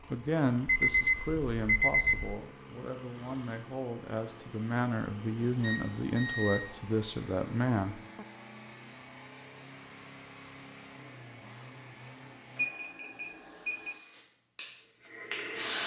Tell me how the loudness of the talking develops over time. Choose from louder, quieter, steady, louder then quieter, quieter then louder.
quieter then louder.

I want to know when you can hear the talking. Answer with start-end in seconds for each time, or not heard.
0.1-8.2.